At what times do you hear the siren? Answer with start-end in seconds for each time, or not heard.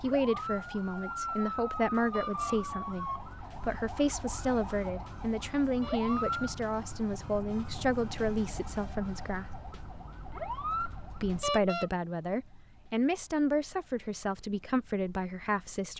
0.0-15.9.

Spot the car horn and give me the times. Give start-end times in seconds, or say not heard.
2.1-2.6, 5.8-6.2, 11.4-11.9.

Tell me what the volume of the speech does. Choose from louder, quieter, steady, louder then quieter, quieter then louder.
steady.